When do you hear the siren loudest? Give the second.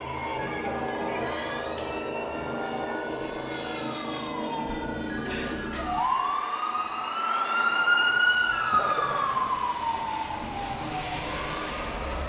8 s.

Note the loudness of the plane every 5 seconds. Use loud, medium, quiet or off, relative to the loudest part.
loud, medium, loud.